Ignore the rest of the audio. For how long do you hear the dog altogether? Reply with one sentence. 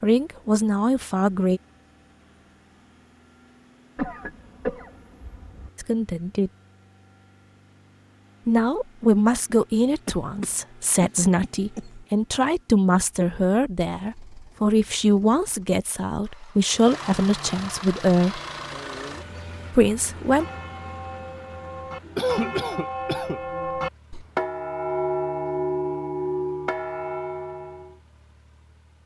The dog can't be heard in this clip.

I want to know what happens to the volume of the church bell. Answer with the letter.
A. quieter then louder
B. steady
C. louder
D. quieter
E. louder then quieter
C.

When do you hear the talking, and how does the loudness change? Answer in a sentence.
The talking can be heard briefly from 0.0 to 1.6 s; briefly from 5.8 to 6.5 s; from 8.4 to 18.4 s, at a steady volume; and briefly from 19.7 to 20.4 s.